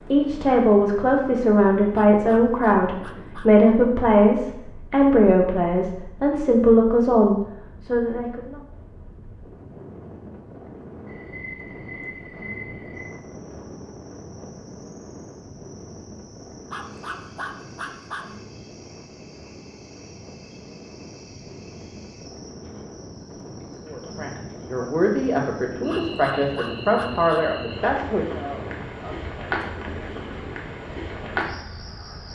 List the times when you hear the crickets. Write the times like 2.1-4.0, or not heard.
11.1-32.2.